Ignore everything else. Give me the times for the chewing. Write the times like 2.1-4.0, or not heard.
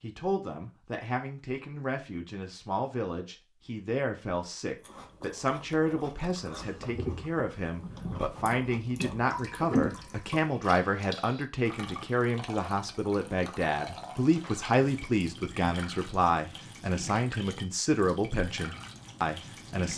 4.8-10.3.